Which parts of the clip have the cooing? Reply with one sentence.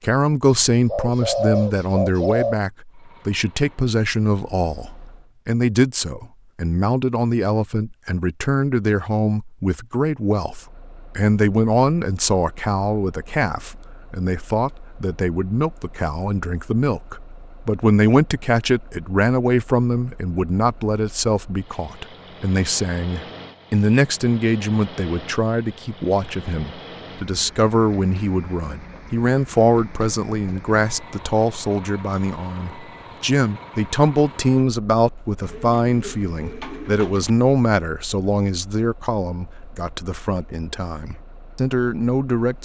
The cooing can be heard from 0.7 to 2.6 s and from 35.4 to 37.3 s.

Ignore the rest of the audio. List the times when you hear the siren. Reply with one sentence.
You can't hear the siren here.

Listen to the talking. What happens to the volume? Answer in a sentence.
The loudness of the talking stays about the same.